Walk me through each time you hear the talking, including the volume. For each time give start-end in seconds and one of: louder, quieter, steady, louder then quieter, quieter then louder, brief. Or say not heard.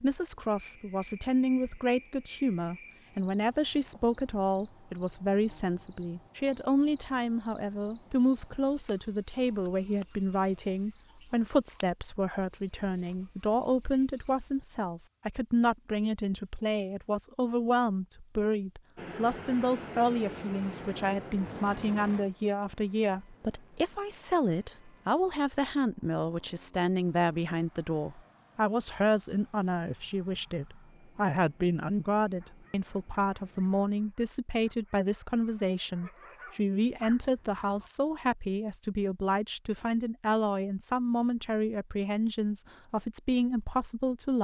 0.0-44.3 steady.